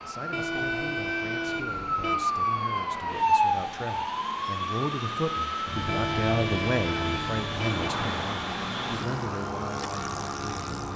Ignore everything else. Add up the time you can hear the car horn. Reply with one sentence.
You can hear the car horn for 4 seconds altogether.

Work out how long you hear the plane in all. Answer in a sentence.
You can hear the plane for 11 seconds altogether.